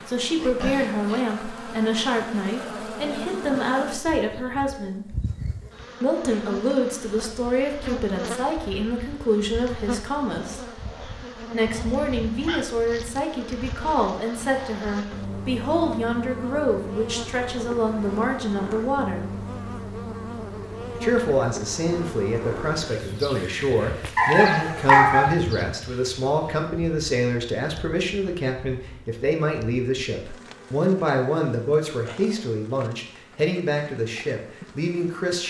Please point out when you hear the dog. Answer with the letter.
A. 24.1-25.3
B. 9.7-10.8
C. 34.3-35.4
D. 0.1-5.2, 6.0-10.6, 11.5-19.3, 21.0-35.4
A.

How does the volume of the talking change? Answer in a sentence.
The volume of the talking stays about the same.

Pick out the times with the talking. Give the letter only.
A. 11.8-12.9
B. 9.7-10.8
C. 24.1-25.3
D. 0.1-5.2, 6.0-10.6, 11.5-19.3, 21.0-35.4
D.